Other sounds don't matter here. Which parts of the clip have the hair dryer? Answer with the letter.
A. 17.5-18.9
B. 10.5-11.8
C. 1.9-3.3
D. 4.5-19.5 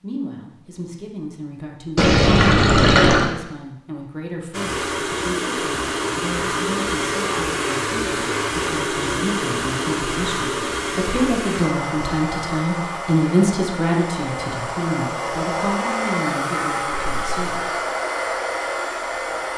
D.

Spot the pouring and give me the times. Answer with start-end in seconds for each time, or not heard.
1.9-3.3.